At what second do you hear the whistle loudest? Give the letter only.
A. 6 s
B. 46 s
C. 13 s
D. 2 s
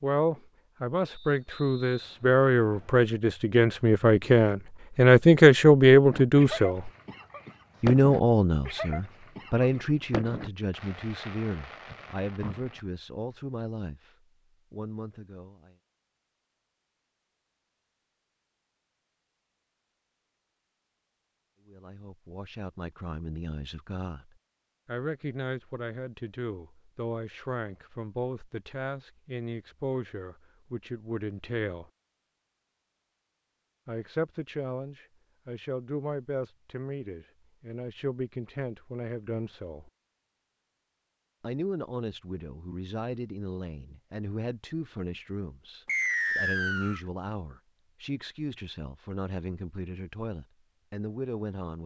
B.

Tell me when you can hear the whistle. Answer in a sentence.
The whistle can be heard from 1.1 to 3.0 s and from 45.9 to 47.0 s.